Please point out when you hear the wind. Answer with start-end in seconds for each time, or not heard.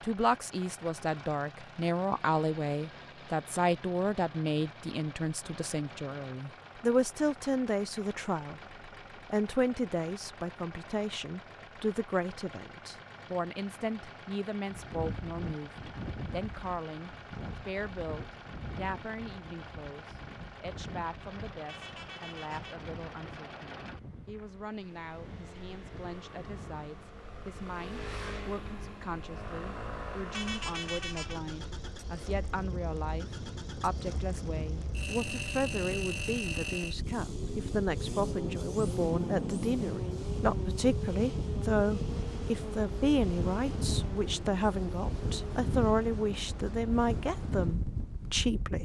14.7-48.8.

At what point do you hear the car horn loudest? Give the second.
31 s.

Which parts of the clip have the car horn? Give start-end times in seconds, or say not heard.
21.6-22.9, 30.3-31.4.